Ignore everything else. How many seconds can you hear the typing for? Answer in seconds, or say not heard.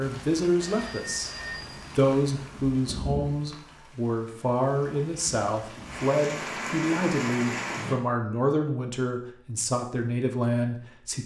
not heard.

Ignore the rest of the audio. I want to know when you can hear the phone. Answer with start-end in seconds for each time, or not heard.
0.6-1.8.